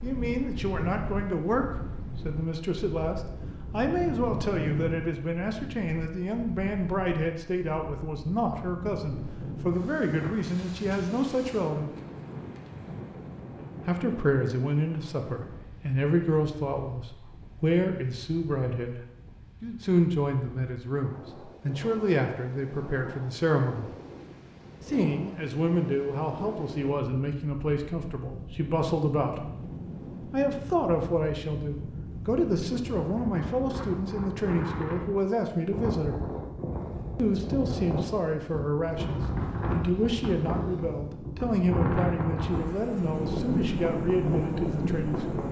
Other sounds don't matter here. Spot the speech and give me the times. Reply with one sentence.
The speech can be heard from 0.0 to 11.9 s, from 13.8 to 23.9 s, from 24.9 to 29.5 s, from 30.2 to 36.2 s and from 37.1 to 45.4 s.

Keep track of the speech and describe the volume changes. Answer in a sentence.
The loudness of the speech stays about the same.